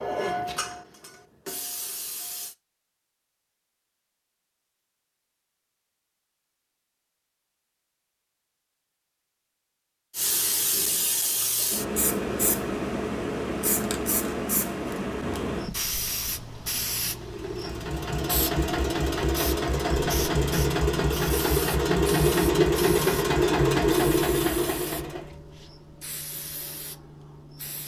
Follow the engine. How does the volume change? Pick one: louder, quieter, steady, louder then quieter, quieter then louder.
louder.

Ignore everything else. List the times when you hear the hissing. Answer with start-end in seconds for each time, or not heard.
0.0-2.5, 10.2-27.8.